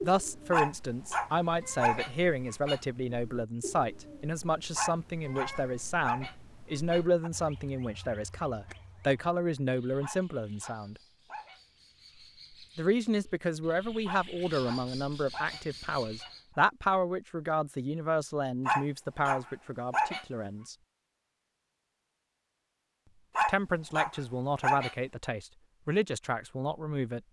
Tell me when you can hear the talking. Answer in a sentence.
The talking can be heard from 0.0 to 10.9 s, from 12.8 to 20.8 s and from 23.4 to 27.2 s.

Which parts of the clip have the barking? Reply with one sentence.
The barking can be heard from 0.5 to 2.8 s, from 4.8 to 7.3 s, from 10.0 to 11.6 s, from 14.1 to 16.4 s, from 18.6 to 20.2 s and from 23.4 to 24.9 s.